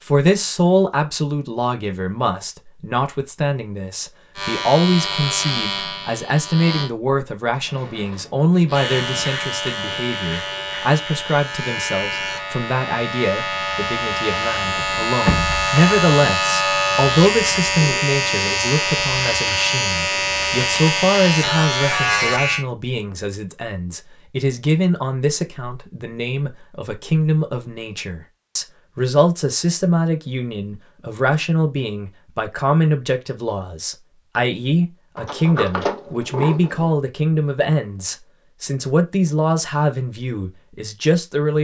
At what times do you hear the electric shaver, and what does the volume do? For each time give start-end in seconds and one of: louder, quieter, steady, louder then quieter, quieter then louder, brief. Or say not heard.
4.3-6.9 brief
8.7-22.6 louder.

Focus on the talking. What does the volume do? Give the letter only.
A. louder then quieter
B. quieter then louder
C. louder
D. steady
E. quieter
D.